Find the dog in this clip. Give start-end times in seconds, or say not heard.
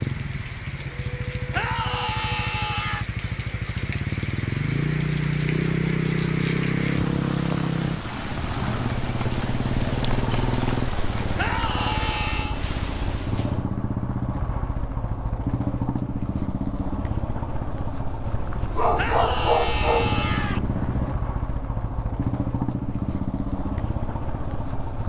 18.2-21.1.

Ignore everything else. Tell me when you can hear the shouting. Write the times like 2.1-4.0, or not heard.
1.5-3.0, 11.3-12.6, 18.9-20.6.